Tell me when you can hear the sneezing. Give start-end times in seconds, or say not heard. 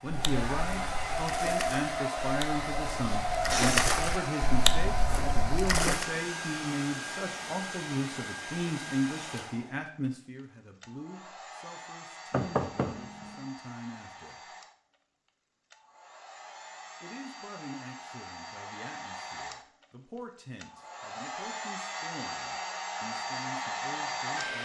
not heard.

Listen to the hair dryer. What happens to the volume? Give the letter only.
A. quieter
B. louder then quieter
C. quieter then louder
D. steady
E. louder
C.